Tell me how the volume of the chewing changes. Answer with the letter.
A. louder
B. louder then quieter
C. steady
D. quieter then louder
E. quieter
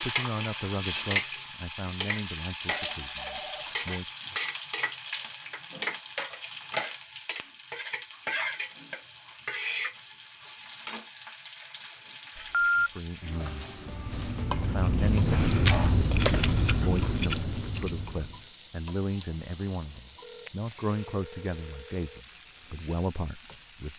B.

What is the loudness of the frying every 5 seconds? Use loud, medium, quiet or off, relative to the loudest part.
loud, loud, medium, quiet, quiet.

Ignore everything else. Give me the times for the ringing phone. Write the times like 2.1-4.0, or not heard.
2.7-3.8, 12.3-12.9, 20.2-22.2.